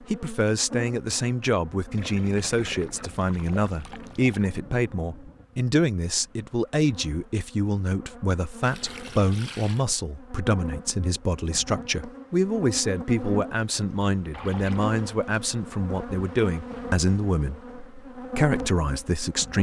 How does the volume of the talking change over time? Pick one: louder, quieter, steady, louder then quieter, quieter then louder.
steady.